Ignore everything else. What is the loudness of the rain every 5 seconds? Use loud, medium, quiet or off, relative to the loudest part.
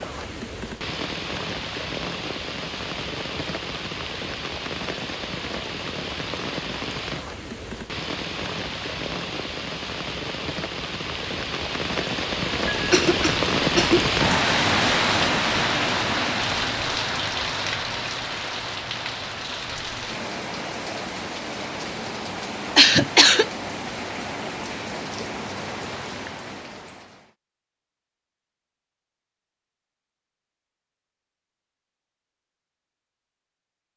medium, medium, loud, loud, medium, medium, off.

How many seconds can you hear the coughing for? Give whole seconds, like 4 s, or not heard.
2 s.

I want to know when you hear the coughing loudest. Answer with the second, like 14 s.
23 s.